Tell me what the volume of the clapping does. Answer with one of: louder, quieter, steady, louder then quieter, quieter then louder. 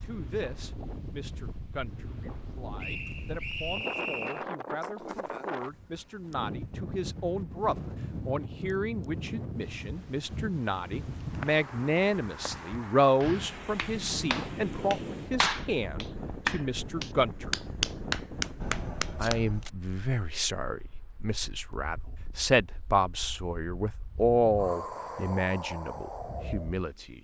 louder.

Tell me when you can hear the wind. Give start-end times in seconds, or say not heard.
0.0-27.1.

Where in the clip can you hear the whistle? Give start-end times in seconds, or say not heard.
2.8-4.5.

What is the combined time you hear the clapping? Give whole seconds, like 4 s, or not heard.
6 s.